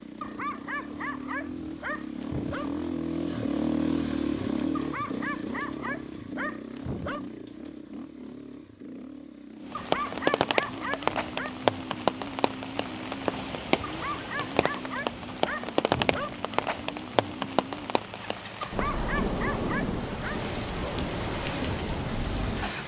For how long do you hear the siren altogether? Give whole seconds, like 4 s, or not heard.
not heard.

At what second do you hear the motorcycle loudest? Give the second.
4 s.